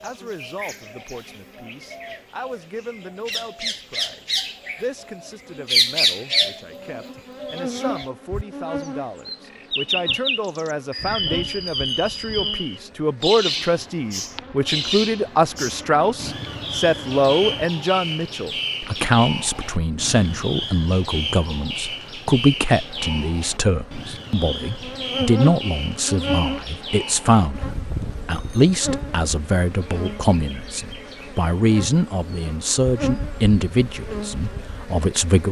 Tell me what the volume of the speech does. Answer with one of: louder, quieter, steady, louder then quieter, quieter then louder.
louder.